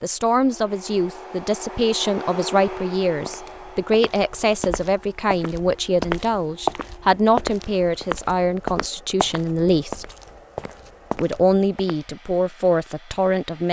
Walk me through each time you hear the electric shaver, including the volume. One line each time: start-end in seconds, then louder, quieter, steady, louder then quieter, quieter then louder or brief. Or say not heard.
not heard.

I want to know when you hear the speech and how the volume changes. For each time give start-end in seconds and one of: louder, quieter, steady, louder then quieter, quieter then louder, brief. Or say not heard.
0.0-10.1 steady
11.2-13.6 brief.